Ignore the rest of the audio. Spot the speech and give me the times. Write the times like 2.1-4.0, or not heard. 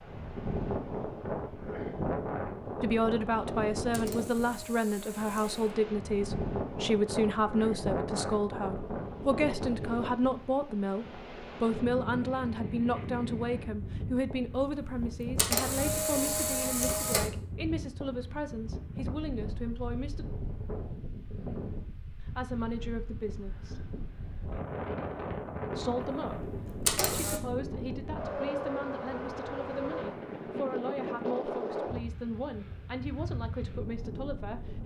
2.8-20.2, 22.3-23.9, 25.7-34.8.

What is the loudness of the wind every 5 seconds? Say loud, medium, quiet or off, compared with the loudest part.
loud, loud, medium, medium, medium, loud, loud.